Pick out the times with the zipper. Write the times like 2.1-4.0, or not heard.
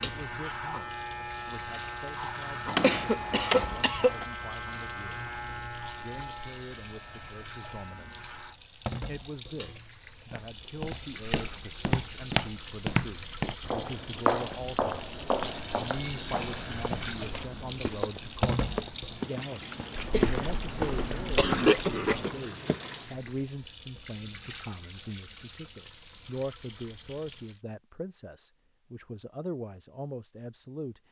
not heard.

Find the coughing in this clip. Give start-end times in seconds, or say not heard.
2.8-4.1, 19.9-22.3.